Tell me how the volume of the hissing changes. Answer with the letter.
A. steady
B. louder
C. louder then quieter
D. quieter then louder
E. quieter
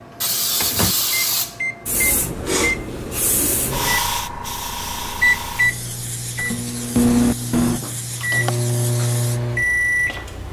E.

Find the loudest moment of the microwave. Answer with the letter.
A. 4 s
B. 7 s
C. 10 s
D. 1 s
B.